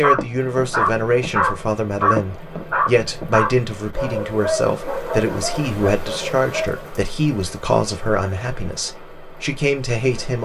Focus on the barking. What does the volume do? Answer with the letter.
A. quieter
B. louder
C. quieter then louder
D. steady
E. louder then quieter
A.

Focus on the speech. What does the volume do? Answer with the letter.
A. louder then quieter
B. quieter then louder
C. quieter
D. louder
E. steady
E.